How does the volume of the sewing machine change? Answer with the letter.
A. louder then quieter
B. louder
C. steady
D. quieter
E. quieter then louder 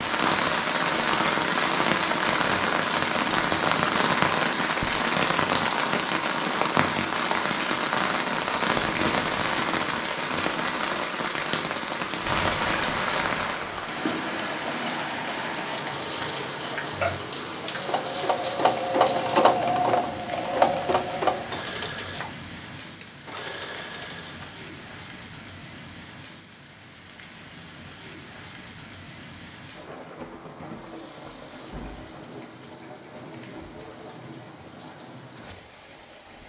A.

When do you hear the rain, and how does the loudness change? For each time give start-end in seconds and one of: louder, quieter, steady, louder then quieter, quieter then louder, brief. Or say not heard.
0.0-36.4 quieter.